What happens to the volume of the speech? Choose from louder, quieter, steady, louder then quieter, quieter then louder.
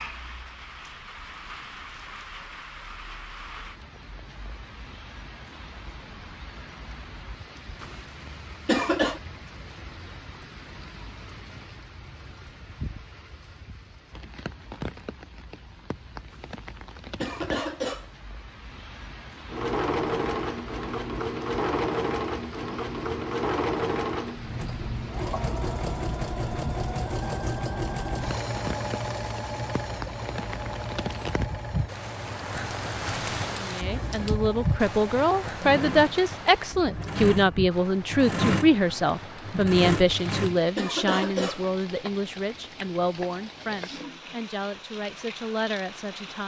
quieter.